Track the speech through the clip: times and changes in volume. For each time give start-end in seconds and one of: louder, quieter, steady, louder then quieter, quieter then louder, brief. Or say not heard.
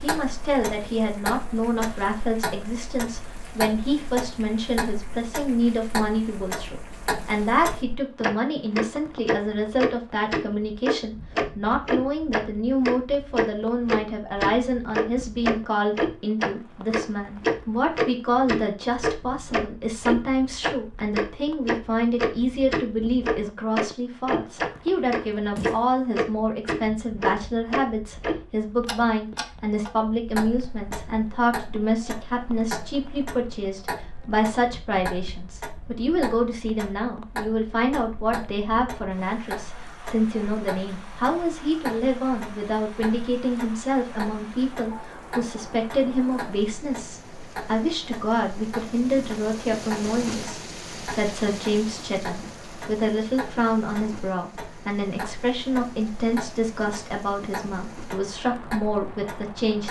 0.0-59.8 steady.